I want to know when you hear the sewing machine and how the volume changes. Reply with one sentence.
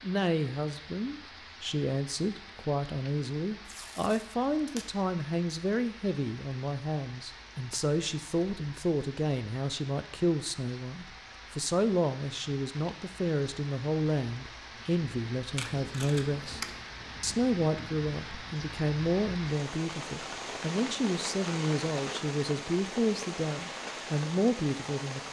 You can't hear the sewing machine here.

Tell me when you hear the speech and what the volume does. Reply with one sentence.
You can hear the speech from 0.0 to 25.2 s, at a steady volume.